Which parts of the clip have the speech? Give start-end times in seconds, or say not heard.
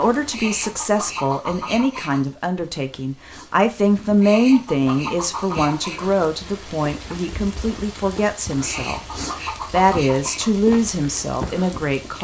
0.0-12.2.